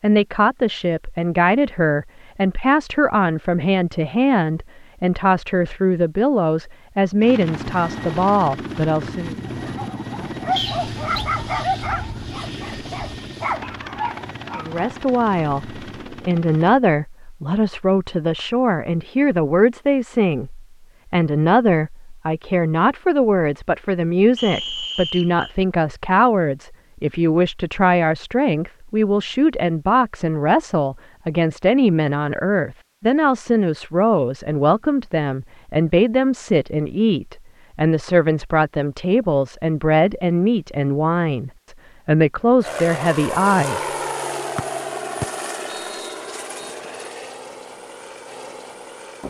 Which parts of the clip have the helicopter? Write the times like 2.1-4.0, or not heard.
7.2-16.8, 42.6-49.2.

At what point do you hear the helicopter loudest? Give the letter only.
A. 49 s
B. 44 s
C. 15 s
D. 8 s
B.